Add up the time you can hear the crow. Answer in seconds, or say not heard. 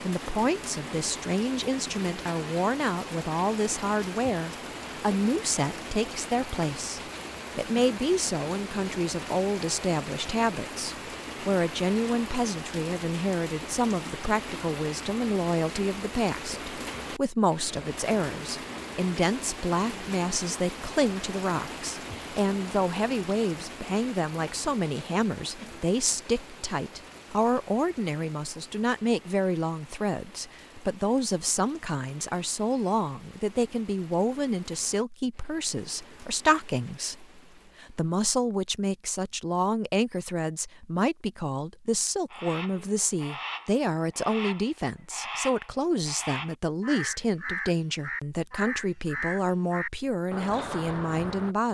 9 s.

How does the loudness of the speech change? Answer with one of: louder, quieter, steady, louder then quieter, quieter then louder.
steady.